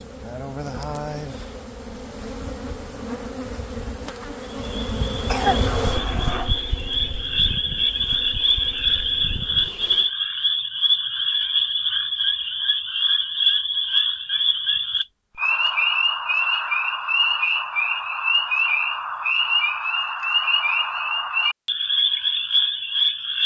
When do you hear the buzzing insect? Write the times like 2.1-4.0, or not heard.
0.0-10.1.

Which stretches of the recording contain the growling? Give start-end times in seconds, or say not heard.
5.5-6.5.